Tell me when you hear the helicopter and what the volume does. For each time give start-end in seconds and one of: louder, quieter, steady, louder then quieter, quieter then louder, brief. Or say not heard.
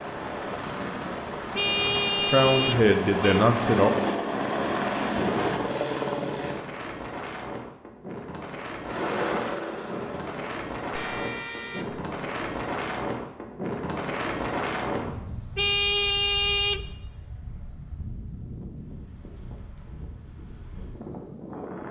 0.0-6.6 louder
8.8-10.6 brief.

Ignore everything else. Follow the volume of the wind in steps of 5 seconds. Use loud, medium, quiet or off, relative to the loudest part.
medium, medium, loud, medium, medium.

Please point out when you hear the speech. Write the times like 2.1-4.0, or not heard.
2.2-3.9.